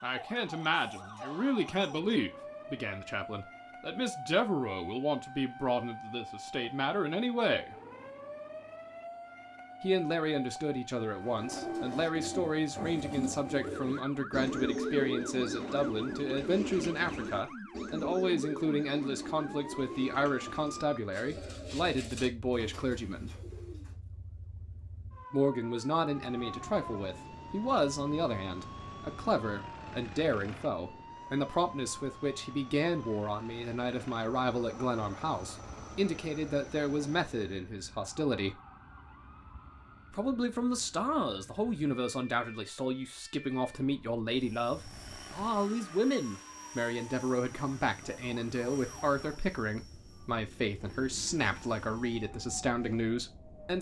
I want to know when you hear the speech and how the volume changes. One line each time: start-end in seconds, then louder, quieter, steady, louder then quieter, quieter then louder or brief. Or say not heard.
0.0-7.8 steady
9.8-23.4 steady
25.3-38.6 steady
40.1-53.7 steady.